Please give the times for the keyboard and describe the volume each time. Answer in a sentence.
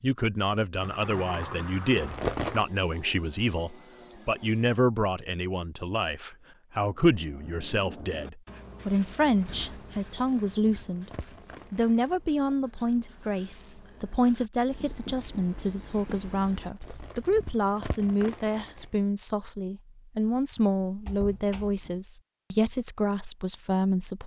The keyboard can't be heard in this clip.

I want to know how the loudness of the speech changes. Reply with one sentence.
The loudness of the speech stays about the same.